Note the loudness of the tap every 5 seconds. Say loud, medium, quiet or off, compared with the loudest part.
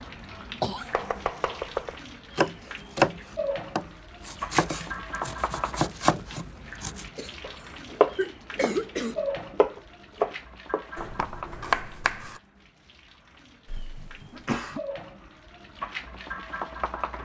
loud, loud, medium, loud.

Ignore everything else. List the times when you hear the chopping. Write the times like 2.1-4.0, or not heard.
0.9-12.4.